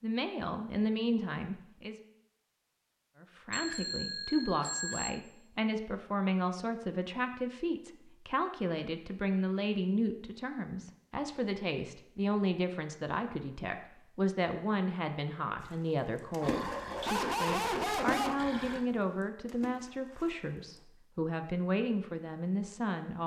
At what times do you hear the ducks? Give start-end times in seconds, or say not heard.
not heard.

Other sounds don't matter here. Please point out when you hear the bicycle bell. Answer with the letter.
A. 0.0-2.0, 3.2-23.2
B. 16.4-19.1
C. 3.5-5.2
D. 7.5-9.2
C.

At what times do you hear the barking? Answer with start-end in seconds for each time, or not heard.
16.4-19.1.